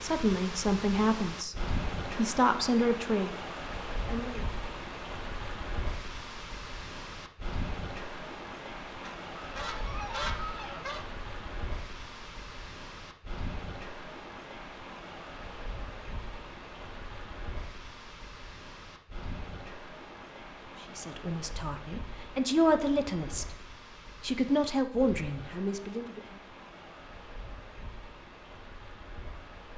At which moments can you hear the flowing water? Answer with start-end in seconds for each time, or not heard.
0.0-29.7.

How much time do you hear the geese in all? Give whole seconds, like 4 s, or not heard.
2 s.